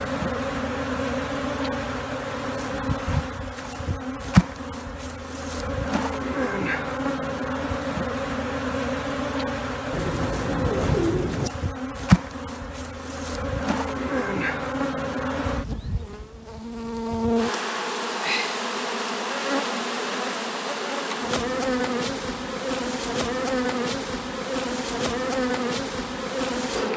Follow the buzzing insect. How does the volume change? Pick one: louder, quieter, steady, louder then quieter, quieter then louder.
steady.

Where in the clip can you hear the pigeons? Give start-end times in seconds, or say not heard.
9.9-11.5.